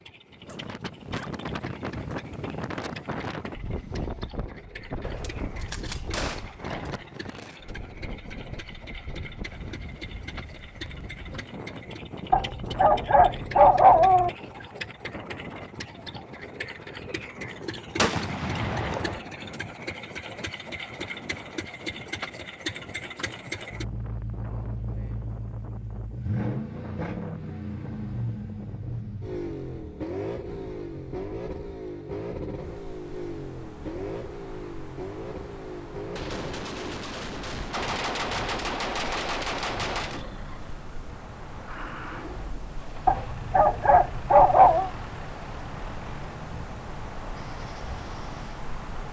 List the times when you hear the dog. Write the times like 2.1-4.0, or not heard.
12.3-14.3, 43.0-44.9.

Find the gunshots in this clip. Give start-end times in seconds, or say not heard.
5.0-7.0, 17.9-19.2, 36.1-40.2.